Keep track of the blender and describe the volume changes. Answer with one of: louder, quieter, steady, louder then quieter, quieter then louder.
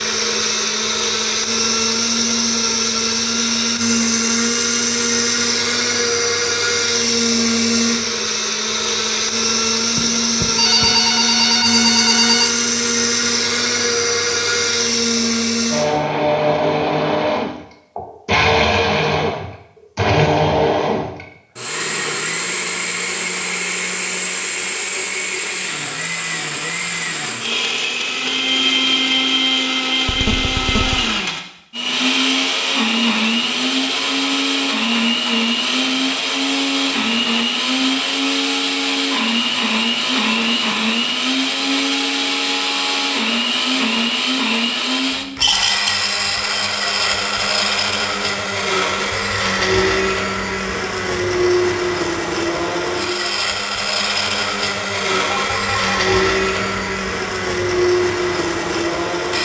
steady.